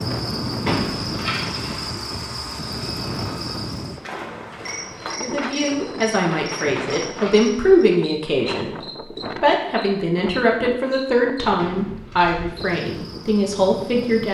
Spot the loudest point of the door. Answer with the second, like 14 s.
1 s.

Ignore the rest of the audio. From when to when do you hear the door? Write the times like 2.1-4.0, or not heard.
0.6-1.9, 6.6-7.3, 11.6-12.6.